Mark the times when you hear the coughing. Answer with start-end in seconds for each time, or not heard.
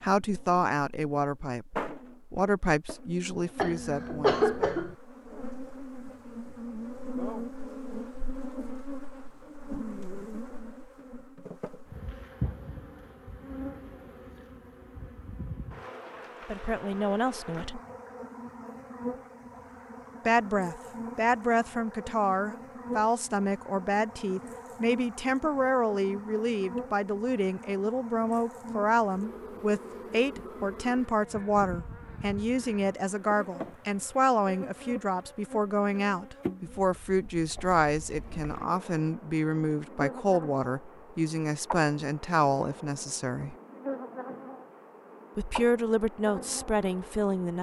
3.5-5.0.